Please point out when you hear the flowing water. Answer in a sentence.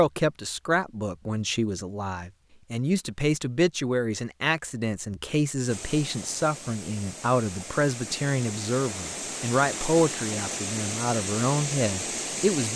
The flowing water can be heard from 5.6 to 12.7 s.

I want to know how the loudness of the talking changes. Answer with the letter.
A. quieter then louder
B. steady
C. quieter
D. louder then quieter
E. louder
B.